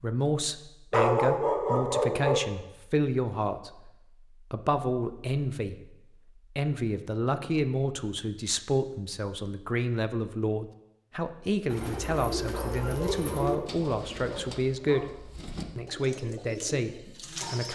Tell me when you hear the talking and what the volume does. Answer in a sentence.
You can hear the talking from 0.0 to 17.7 s, at a steady volume.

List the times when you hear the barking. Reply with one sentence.
You can hear the barking from 0.9 to 2.4 s and from 12.5 to 15.1 s.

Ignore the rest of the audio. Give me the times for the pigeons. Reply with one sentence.
The pigeons can be heard from 11.7 to 17.7 s.